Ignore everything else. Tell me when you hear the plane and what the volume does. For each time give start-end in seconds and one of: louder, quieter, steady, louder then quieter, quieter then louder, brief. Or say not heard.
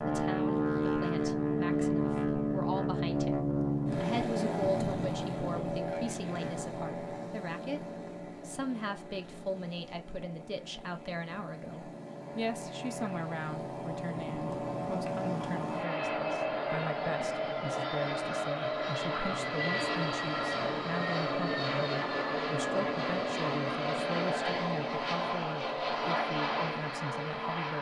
0.0-27.7 quieter then louder.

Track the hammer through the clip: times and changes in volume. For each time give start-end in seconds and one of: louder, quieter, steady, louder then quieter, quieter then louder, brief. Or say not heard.
not heard.